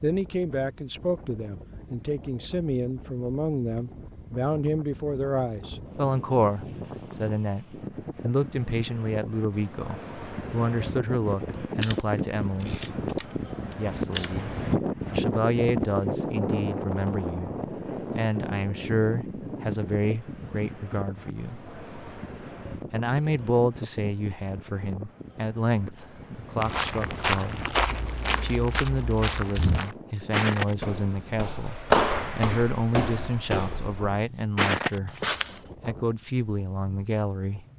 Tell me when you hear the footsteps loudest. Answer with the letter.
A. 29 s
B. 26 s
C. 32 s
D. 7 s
C.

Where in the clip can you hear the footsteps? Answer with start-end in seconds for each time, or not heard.
26.6-35.6.